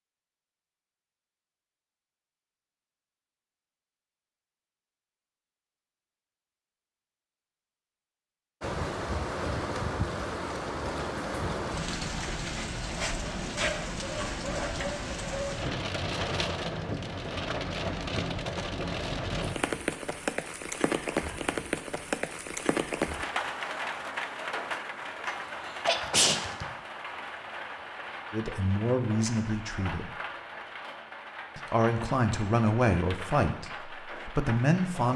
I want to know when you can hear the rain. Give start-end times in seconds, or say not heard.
8.6-35.1.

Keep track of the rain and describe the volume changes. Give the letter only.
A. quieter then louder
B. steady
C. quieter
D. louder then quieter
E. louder
C.